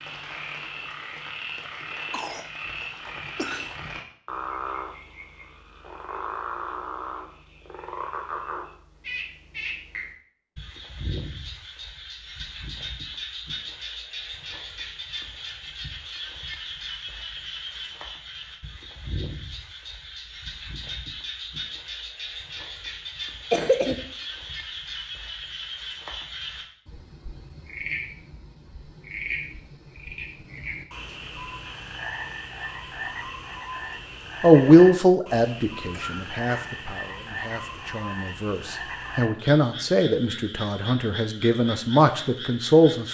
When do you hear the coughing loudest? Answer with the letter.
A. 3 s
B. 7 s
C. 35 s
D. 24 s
D.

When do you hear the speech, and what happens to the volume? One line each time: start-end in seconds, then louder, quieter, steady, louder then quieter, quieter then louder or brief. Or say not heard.
34.4-43.0 quieter then louder.